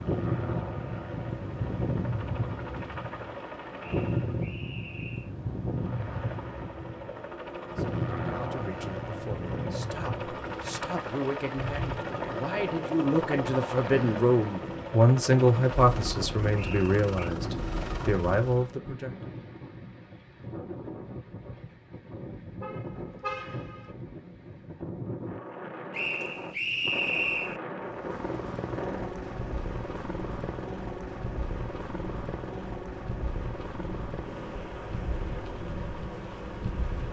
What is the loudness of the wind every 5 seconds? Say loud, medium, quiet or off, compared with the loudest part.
loud, loud, medium, medium, medium, medium, medium, medium.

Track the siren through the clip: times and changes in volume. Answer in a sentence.
The siren can't be heard in this clip.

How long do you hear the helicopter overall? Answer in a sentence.
You can hear the helicopter for 27 seconds altogether.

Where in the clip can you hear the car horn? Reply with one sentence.
The car horn can be heard from 22.6 to 23.9 s.